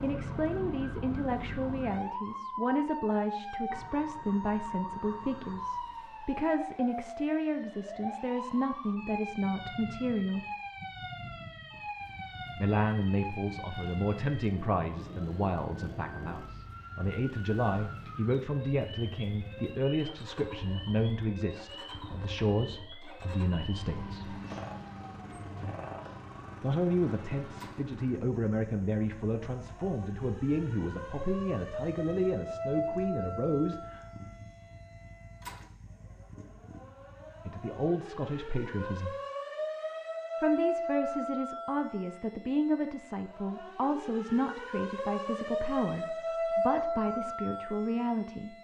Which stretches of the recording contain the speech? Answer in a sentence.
You can hear the speech from 0.0 to 10.4 s, from 12.6 to 24.4 s, from 26.6 to 34.0 s, from 37.5 to 39.1 s and from 40.4 to 48.5 s.